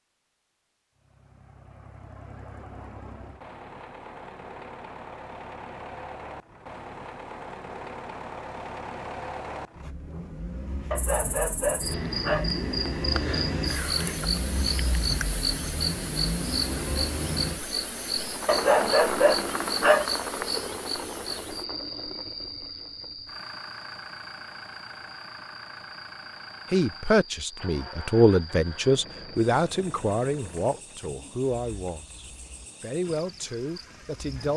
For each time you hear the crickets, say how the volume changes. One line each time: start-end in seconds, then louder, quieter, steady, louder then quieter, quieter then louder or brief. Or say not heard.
10.9-34.5 quieter.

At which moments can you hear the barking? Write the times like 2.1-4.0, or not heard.
10.9-12.6, 18.4-20.1.